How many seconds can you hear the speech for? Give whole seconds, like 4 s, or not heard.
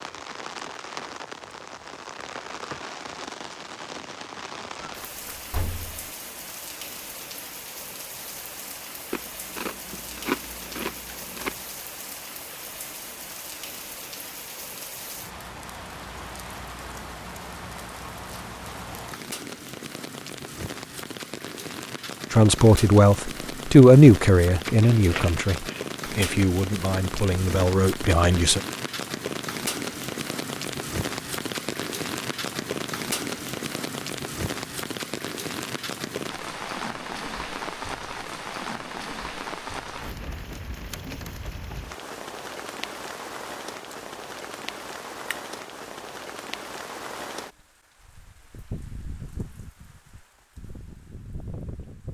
6 s.